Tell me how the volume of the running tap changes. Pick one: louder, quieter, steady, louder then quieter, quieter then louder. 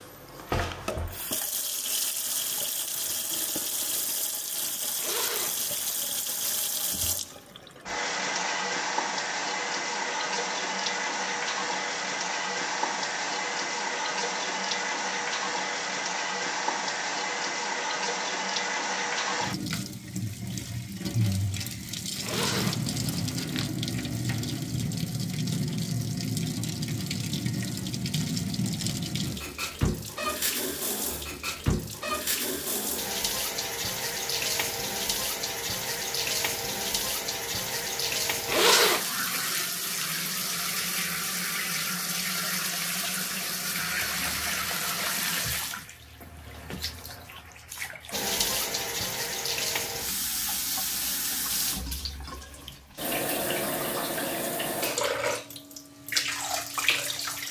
steady.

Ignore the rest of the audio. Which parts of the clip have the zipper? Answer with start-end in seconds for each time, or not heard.
5.0-6.0, 22.2-23.7, 38.5-39.0.